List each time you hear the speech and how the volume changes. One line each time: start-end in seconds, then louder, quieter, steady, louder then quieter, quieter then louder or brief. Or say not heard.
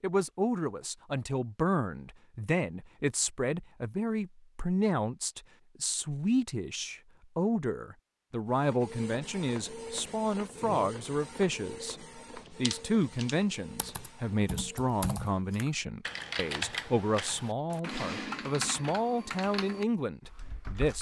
0.0-20.9 steady.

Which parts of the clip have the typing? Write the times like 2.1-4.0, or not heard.
12.4-20.9.